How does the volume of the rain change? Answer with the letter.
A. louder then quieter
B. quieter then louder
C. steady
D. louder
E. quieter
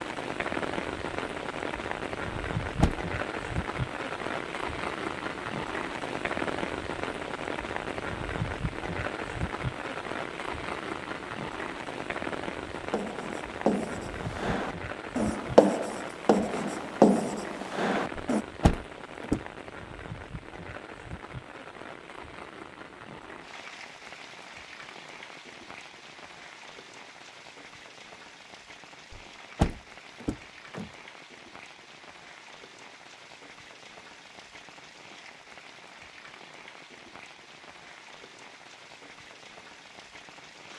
E.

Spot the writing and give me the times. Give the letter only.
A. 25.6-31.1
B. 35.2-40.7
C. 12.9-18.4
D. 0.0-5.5
C.